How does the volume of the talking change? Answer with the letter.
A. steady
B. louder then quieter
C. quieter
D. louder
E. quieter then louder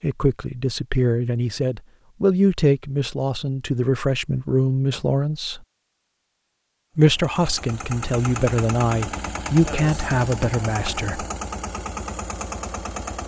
A.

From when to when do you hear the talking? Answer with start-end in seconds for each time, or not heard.
0.0-5.6, 7.0-11.2.